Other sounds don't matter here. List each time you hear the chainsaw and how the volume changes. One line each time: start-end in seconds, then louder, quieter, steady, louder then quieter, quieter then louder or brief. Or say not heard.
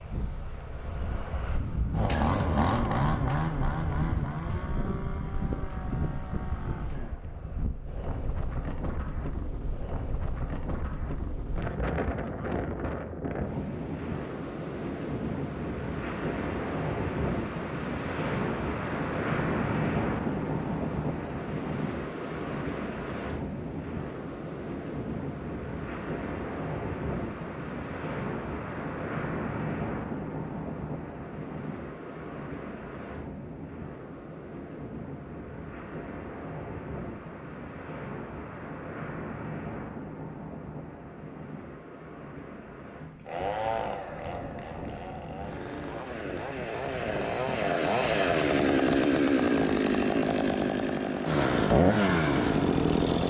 1.9-7.2 quieter
43.2-53.2 louder.